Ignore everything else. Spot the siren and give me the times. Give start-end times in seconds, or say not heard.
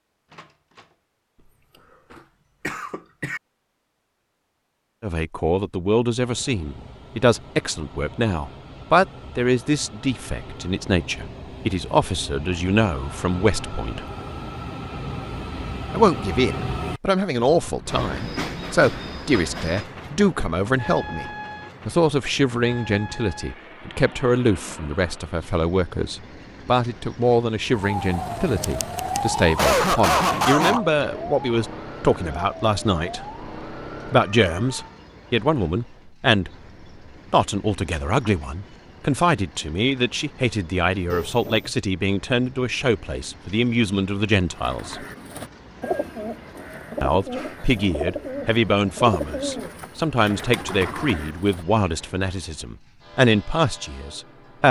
27.6-35.0.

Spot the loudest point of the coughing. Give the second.
30 s.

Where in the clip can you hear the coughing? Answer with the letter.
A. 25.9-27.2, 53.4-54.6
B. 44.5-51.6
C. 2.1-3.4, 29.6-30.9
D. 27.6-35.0
C.